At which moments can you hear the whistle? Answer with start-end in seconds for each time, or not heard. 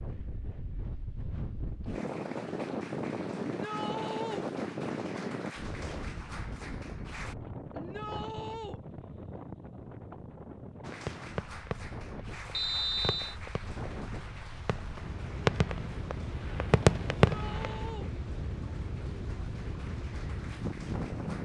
12.5-13.3.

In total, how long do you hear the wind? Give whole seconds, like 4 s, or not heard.
21 s.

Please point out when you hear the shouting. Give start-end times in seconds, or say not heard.
3.5-4.5, 7.7-8.8, 17.2-18.1.